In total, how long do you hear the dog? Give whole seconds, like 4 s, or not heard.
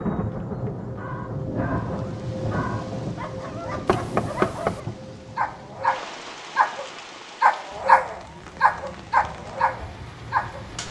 10 s.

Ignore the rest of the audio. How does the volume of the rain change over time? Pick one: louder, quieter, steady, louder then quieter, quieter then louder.
quieter.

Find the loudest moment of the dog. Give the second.
8 s.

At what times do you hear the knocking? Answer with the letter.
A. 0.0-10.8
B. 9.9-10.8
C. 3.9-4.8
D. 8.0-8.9
C.